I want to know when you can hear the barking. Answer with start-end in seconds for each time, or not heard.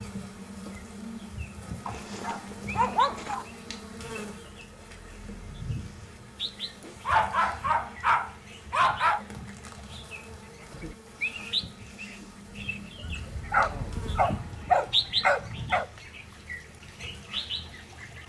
1.9-3.5, 6.8-9.2, 13.0-15.8.